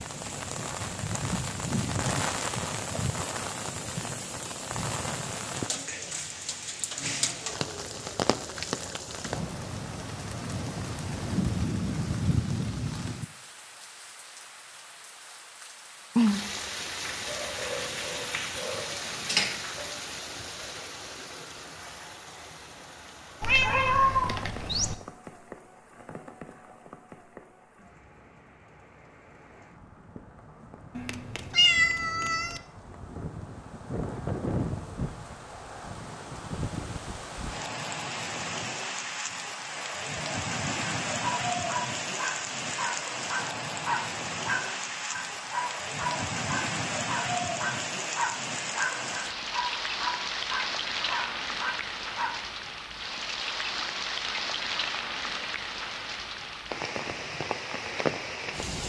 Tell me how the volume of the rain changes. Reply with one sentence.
The volume of the rain goes down, then up.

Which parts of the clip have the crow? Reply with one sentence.
You can't hear the crow here.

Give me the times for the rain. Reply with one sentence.
You can hear the rain from 0.0 to 58.8 s.